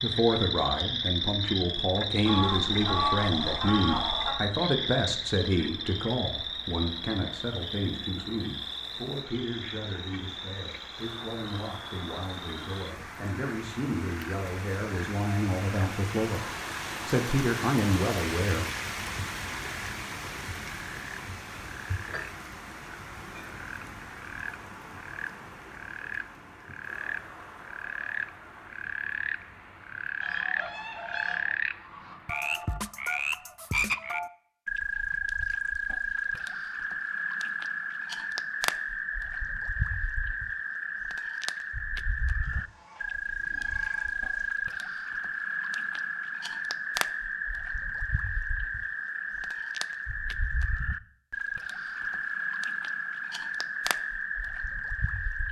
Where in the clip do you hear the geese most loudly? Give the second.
3 s.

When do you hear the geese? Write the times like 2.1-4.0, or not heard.
2.2-4.4, 30.2-32.1, 42.4-44.5.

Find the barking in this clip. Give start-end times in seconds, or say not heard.
not heard.